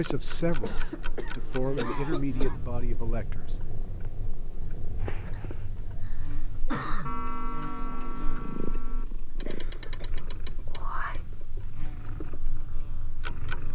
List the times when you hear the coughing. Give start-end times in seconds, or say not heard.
0.6-2.6, 5.2-7.2, 9.4-10.2.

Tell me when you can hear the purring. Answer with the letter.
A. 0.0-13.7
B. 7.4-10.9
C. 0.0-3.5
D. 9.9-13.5
A.